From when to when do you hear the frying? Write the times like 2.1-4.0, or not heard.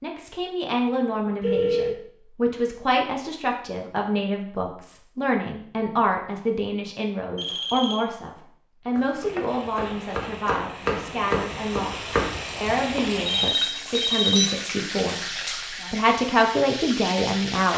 9.1-17.7.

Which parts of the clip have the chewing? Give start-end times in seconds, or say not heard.
not heard.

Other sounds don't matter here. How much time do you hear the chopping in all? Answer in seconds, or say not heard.
4 s.